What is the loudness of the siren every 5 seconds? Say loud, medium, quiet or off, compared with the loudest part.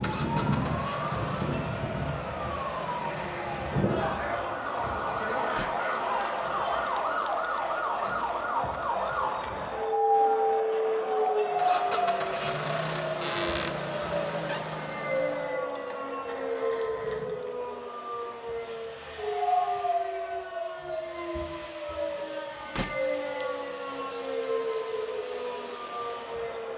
loud, loud, loud, loud, medium, medium.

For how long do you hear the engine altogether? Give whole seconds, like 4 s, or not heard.
19 s.